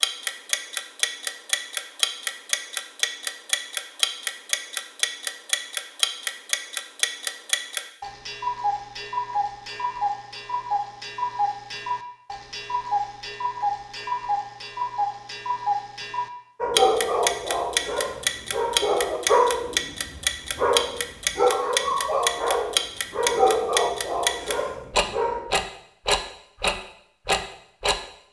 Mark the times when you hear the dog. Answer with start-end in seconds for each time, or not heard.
16.6-25.4.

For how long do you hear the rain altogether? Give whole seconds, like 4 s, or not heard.
not heard.